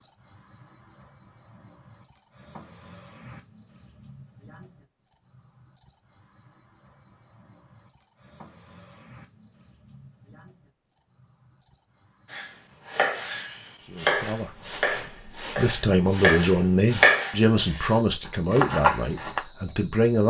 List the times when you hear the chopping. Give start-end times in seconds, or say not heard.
12.3-19.4.